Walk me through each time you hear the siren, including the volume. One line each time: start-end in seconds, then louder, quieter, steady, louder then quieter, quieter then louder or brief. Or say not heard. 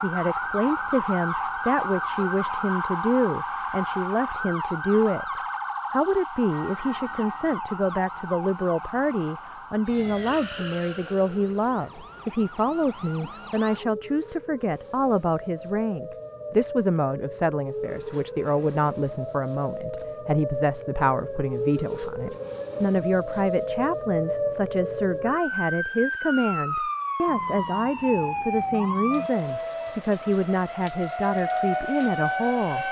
0.0-32.8 quieter then louder.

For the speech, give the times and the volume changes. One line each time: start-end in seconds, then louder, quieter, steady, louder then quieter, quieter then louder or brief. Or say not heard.
0.0-32.8 steady.